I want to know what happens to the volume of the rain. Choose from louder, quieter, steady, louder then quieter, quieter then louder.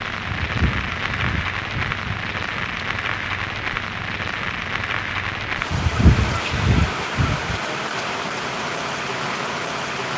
steady.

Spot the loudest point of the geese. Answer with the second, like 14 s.
6 s.